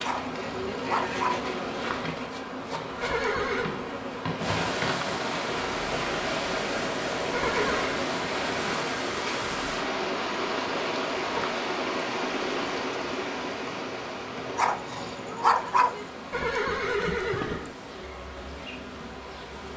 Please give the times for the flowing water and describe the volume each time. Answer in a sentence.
You can hear the flowing water from 4.3 to 19.7 s, getting quieter.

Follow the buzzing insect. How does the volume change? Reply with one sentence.
The loudness of the buzzing insect goes down.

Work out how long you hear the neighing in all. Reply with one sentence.
You can hear the neighing for 3 seconds altogether.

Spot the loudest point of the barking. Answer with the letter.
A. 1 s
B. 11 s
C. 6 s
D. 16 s
D.